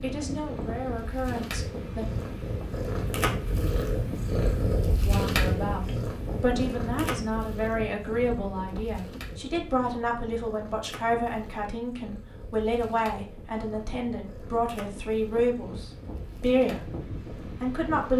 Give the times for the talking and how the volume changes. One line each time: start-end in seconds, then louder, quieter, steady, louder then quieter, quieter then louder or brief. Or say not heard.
0.0-2.0 brief
5.0-16.9 steady
17.6-18.1 brief.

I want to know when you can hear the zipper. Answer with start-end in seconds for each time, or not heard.
not heard.